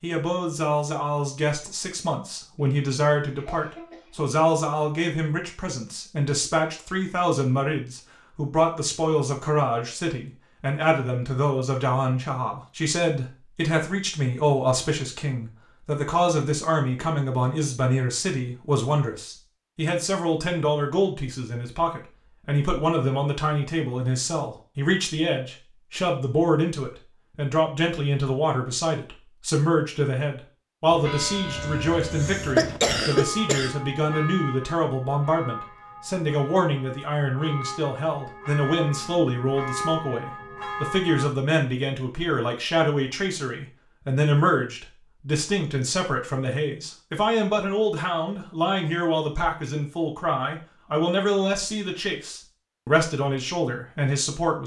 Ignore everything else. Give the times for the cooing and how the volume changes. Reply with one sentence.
You can't hear the cooing here.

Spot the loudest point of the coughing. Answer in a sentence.
The volume of the coughing peaks at 33 seconds.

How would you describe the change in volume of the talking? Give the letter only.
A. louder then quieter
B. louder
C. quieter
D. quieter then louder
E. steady
E.